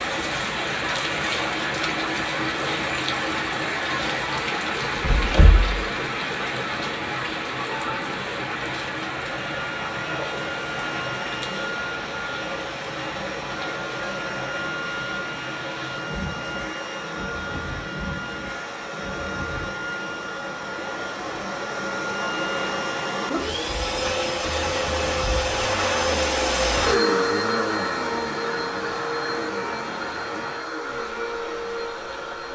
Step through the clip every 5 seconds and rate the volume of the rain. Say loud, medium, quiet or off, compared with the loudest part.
loud, loud, medium, medium, medium, medium, medium.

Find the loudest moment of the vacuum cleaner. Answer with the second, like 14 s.
27 s.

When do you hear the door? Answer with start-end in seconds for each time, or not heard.
4.9-5.8.